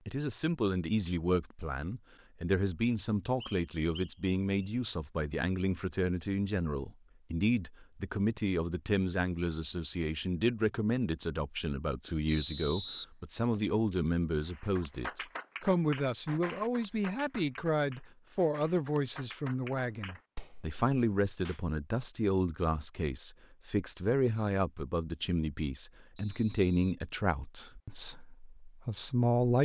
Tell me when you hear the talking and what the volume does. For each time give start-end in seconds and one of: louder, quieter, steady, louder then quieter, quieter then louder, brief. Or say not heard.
0.1-29.5 steady.